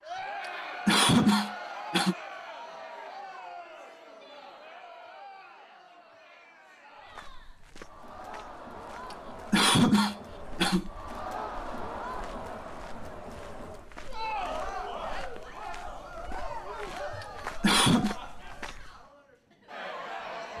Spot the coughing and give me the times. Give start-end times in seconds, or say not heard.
0.8-2.1, 9.5-10.9, 17.6-18.1.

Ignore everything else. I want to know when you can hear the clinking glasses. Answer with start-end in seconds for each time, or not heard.
not heard.